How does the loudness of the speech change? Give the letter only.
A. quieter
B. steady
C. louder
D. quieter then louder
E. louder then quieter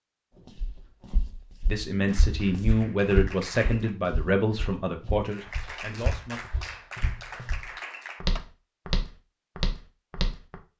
A.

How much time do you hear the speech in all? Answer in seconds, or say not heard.
5 s.